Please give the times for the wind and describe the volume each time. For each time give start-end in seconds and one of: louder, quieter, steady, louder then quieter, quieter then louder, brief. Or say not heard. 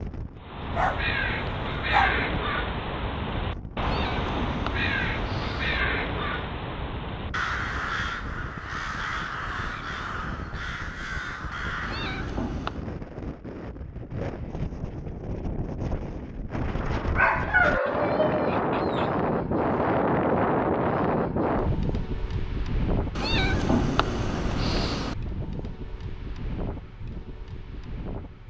0.0-28.4 louder then quieter.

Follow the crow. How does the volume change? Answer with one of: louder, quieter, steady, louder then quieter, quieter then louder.
quieter.